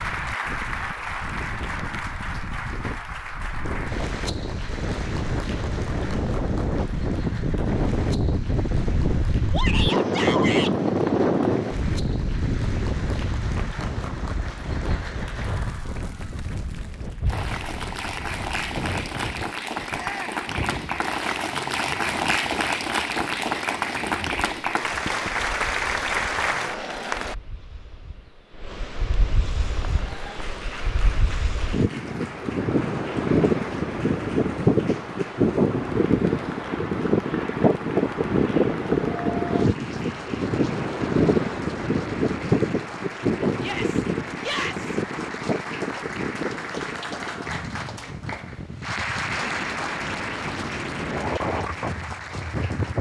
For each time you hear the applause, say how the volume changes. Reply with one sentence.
You can hear the applause from 0.0 to 27.4 s, getting quieter then louder; and from 29.8 to 52.9 s, getting louder.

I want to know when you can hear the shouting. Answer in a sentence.
The shouting can be heard from 9.5 to 10.8 s, from 19.9 to 20.4 s and from 43.5 to 45.0 s.